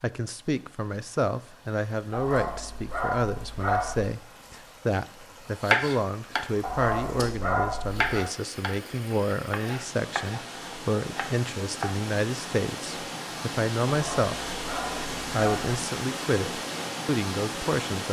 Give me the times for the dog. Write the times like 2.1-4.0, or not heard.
2.1-4.1, 6.6-8.2, 13.8-15.8.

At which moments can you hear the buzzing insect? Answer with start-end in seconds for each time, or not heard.
not heard.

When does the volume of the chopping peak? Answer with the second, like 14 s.
6 s.